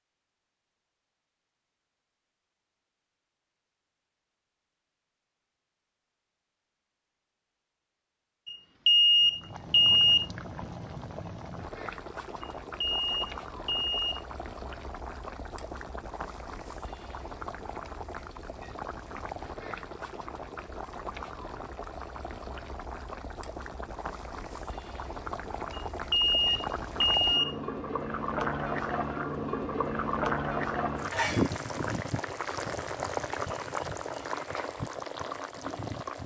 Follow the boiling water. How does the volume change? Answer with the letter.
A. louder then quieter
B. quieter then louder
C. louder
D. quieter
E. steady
C.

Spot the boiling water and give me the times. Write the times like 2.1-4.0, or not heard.
9.2-36.2.